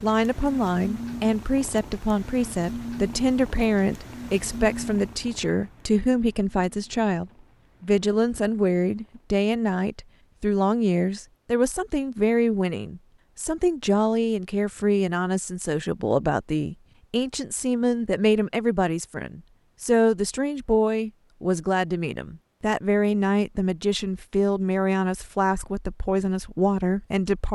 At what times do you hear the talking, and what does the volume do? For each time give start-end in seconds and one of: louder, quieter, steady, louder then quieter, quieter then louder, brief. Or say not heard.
0.0-27.4 steady.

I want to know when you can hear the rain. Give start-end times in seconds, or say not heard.
not heard.